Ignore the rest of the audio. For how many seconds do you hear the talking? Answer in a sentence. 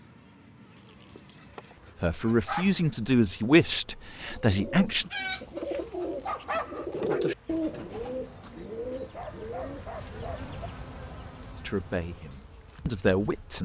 The talking can be heard for 5 seconds in total.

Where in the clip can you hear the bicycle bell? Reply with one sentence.
You can't hear the bicycle bell here.